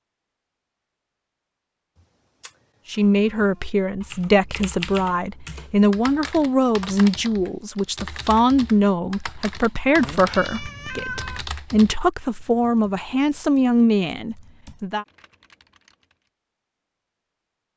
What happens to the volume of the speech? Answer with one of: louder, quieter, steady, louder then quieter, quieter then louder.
steady.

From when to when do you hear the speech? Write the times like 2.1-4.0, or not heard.
2.9-15.1.